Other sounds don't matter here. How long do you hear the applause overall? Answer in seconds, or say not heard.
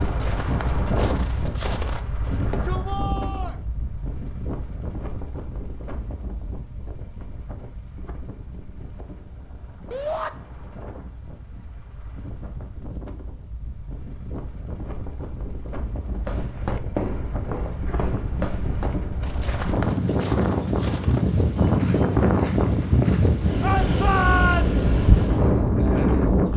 not heard.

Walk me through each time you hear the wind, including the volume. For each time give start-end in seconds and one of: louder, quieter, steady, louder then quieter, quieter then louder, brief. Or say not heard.
0.0-26.5 quieter then louder.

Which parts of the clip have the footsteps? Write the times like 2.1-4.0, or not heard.
0.0-2.6, 16.1-23.5.